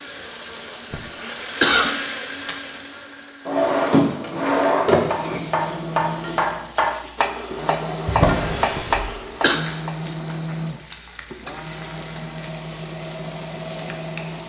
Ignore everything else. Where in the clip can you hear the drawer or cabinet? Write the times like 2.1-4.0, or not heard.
3.5-5.4, 8.1-9.1.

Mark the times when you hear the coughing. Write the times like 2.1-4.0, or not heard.
0.9-1.9, 8.8-9.6.